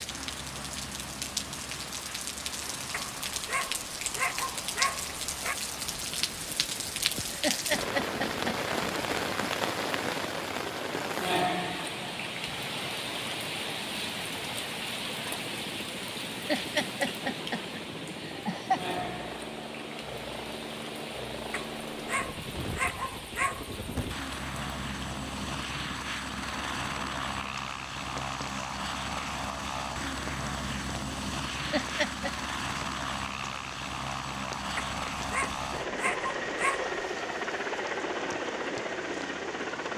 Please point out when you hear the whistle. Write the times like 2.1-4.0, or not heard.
not heard.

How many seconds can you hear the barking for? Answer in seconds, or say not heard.
7 s.